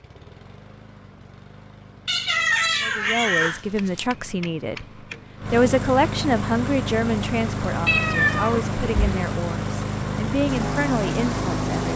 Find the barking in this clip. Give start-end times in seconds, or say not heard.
not heard.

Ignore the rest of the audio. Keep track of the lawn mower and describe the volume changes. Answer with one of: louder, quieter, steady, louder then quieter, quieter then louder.
louder.